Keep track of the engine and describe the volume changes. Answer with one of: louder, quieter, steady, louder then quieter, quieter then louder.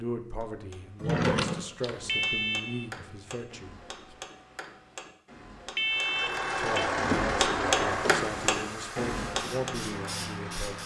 quieter.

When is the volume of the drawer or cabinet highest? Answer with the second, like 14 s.
1 s.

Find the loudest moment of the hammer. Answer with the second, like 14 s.
8 s.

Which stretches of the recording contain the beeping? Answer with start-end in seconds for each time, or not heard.
2.0-2.9, 5.8-6.7.